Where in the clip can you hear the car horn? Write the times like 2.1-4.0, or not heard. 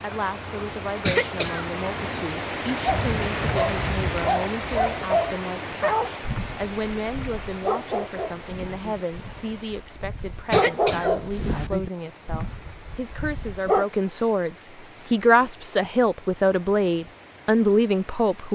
not heard.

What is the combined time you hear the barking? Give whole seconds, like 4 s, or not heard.
11 s.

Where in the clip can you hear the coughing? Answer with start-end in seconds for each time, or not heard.
1.1-2.2, 10.5-11.7.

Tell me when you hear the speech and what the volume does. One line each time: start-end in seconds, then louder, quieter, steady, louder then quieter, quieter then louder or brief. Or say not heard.
0.0-18.5 louder.